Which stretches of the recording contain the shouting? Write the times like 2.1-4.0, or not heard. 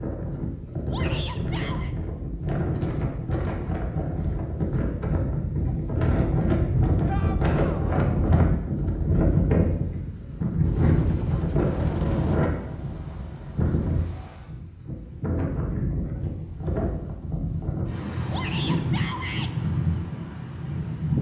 0.9-1.9, 7.0-8.0, 18.3-19.5.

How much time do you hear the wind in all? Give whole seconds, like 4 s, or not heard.
21 s.